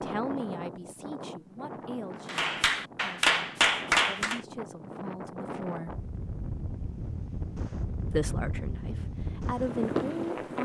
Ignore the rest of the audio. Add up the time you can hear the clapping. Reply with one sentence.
The clapping can be heard for 2 seconds in total.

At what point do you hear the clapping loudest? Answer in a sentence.
The volume of the clapping peaks at 4 seconds.